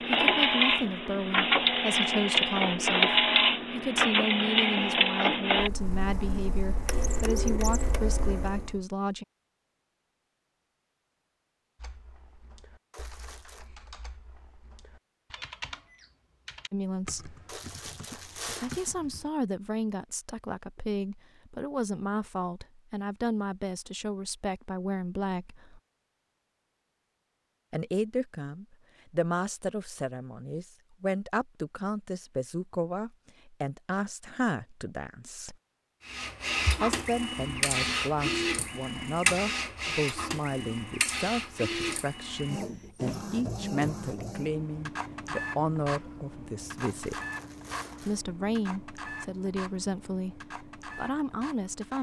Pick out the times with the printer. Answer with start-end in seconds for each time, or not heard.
0.0-8.8, 36.0-51.9.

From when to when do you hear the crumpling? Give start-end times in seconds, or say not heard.
12.9-13.7, 17.4-18.9, 46.8-48.2.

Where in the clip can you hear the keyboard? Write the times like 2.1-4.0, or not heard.
11.8-19.3.